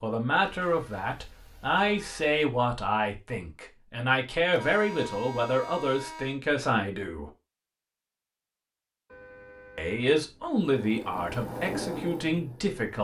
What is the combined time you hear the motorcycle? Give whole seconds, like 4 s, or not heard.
2 s.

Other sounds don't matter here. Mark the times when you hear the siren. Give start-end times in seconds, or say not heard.
not heard.